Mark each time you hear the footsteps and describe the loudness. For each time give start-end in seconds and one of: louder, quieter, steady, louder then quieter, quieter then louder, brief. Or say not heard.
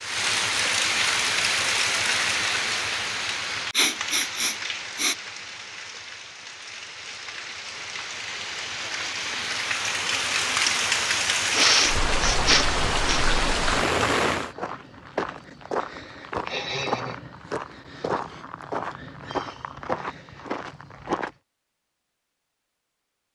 14.3-21.3 steady.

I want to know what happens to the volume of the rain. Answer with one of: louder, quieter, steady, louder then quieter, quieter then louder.
quieter then louder.